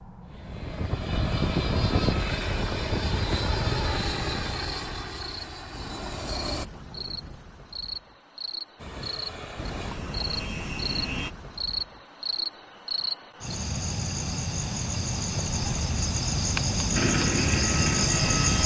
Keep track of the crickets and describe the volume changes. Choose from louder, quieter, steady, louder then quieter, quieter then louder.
louder.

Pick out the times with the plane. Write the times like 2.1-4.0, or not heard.
0.0-6.7, 8.8-11.3, 16.9-18.6.